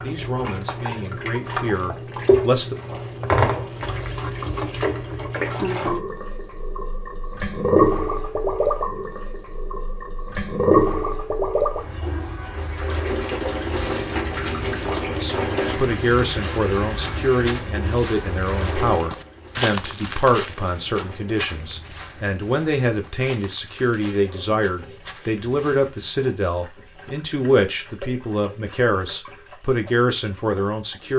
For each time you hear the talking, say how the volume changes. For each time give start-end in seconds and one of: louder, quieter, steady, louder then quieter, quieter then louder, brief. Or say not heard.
0.0-2.8 brief
15.2-31.1 steady.